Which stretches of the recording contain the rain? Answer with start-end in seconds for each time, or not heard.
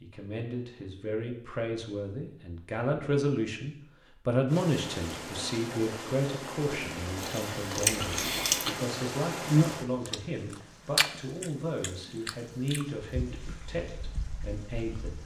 4.5-15.2.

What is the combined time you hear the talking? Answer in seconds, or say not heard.
15 s.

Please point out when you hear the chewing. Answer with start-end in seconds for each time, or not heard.
7.2-8.8, 9.4-13.3.